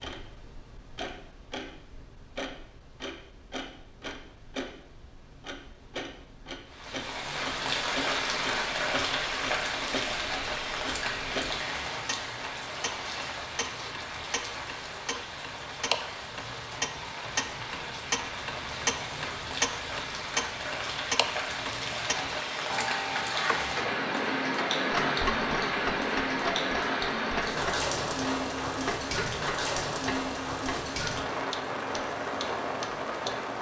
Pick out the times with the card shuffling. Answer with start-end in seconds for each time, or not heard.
not heard.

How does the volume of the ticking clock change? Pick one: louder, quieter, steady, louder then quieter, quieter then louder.
louder.